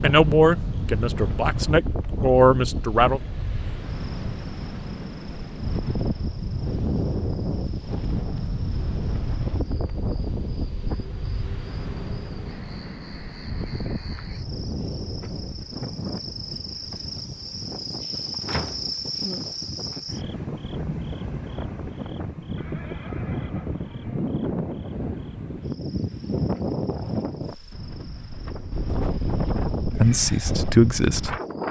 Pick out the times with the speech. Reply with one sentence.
The speech can be heard from 0.0 to 3.2 s and from 29.8 to 31.4 s.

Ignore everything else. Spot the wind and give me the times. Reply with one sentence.
The wind can be heard from 0.0 to 31.6 s.